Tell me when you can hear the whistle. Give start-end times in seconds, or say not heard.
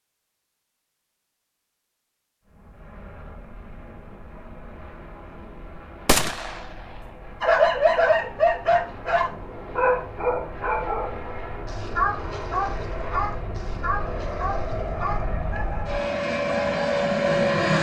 not heard.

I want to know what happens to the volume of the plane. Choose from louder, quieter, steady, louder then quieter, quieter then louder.
louder.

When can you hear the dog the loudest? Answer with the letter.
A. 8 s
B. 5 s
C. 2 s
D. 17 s
A.